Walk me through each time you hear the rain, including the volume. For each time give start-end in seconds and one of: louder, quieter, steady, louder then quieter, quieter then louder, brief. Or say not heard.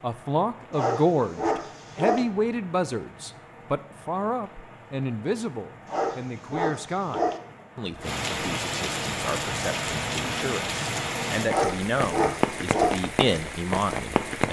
0.0-14.4 louder.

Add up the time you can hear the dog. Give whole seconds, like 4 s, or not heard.
5 s.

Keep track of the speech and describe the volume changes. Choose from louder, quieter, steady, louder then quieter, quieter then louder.
quieter then louder.